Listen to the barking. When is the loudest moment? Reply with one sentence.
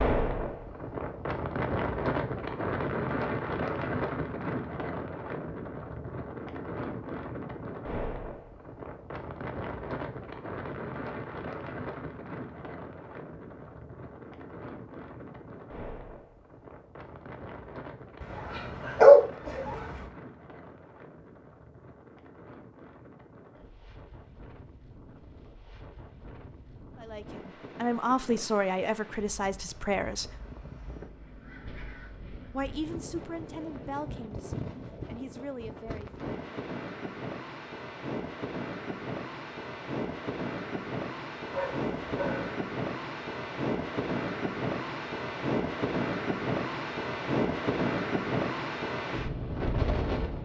The volume of the barking peaks at 19 seconds.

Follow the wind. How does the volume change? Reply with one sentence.
The volume of the wind goes down, then up.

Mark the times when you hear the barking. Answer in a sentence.
You can hear the barking from 18.2 to 20.1 s and from 41.5 to 42.5 s.